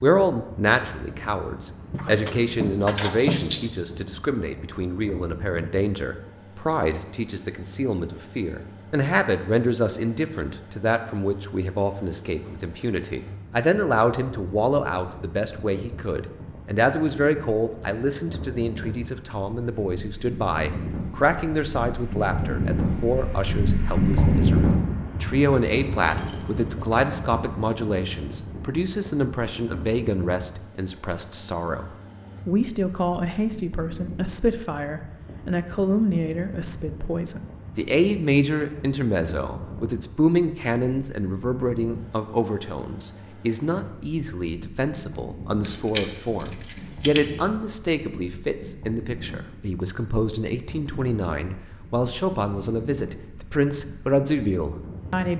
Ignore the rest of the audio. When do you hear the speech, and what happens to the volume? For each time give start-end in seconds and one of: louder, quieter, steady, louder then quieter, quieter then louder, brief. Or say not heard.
0.0-55.3 steady.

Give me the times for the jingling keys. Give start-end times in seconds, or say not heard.
1.9-3.7, 26.1-27.1, 45.6-47.3.